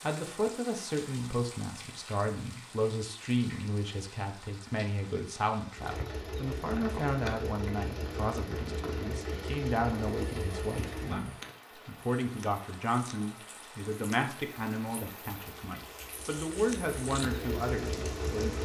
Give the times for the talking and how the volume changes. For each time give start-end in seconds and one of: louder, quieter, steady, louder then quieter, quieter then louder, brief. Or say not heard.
0.0-18.6 steady.